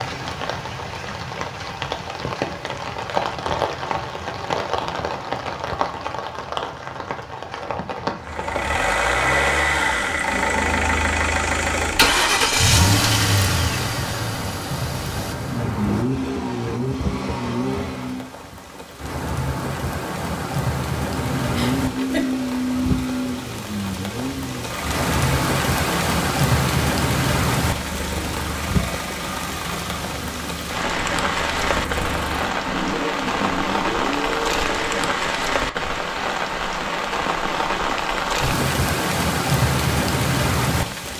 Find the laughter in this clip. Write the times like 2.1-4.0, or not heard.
21.6-22.2.